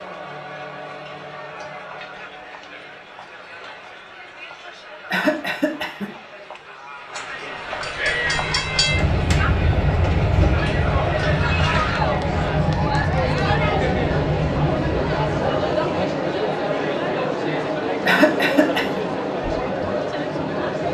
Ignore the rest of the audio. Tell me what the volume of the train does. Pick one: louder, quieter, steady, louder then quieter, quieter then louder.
steady.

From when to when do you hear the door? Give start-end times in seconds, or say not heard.
not heard.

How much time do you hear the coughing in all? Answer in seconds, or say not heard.
2 s.